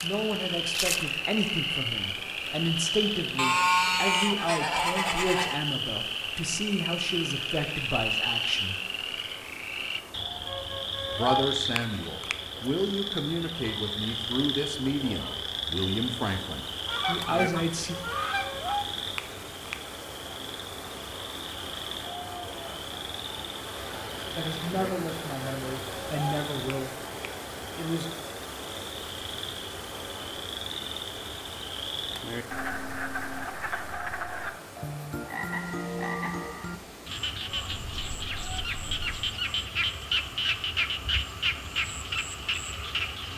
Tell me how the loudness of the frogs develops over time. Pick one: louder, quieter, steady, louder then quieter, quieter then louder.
quieter then louder.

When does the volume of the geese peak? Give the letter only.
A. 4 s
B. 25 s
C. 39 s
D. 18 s
A.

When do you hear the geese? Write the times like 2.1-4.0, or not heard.
3.4-5.6, 16.9-18.8, 37.5-39.2.